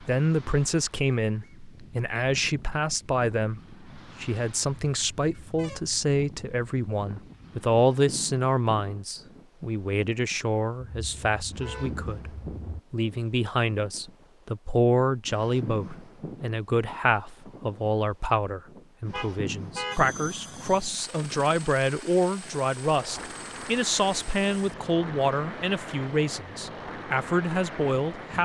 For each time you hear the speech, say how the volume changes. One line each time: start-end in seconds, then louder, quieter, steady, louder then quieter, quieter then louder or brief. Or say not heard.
0.0-28.4 steady.